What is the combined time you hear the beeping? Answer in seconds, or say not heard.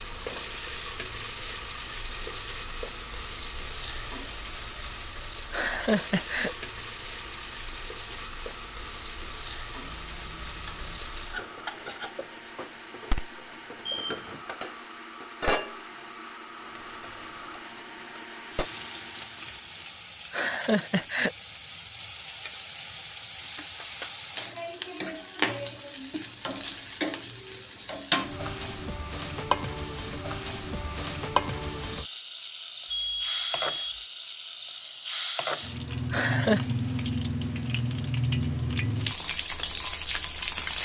3 s.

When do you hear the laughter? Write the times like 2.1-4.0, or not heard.
5.5-6.5, 20.3-21.3, 36.1-36.6.